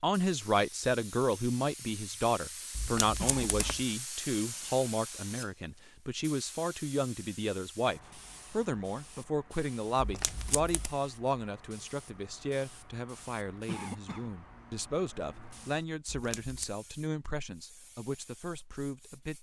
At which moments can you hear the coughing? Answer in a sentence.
The coughing can be heard from 3.1 to 3.8 s and from 13.7 to 14.3 s.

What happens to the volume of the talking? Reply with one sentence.
The loudness of the talking goes down.